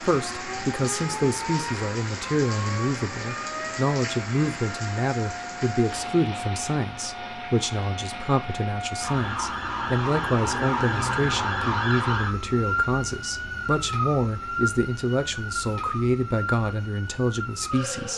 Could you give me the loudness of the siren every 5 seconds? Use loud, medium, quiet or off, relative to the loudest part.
medium, medium, loud, medium.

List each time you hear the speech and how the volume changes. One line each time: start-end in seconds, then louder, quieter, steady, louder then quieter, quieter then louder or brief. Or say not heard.
0.0-18.1 steady.